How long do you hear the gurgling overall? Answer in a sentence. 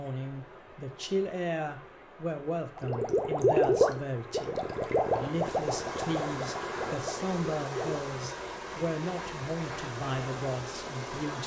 The gurgling can be heard for 5 seconds in total.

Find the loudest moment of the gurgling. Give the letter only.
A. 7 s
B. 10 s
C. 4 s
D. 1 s
C.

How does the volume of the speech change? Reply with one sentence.
The loudness of the speech stays about the same.